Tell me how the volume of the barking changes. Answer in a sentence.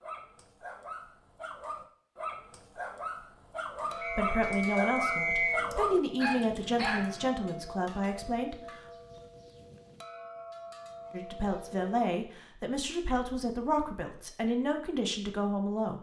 The loudness of the barking goes up.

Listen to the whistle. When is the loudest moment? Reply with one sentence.
The loudest moment of the whistle is at 5 seconds.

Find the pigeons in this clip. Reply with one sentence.
The pigeons can't be heard in this clip.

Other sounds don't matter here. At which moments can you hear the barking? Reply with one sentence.
The barking can be heard from 0.0 to 7.2 s.